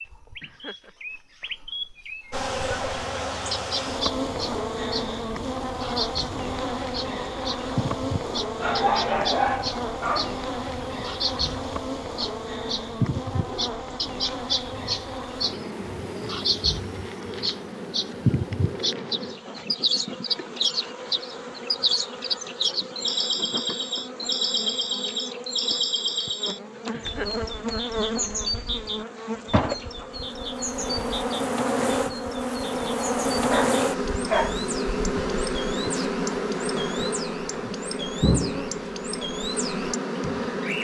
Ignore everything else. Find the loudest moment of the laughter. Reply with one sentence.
The volume of the laughter peaks at 27 seconds.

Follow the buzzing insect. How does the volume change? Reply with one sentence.
The loudness of the buzzing insect goes down, then up.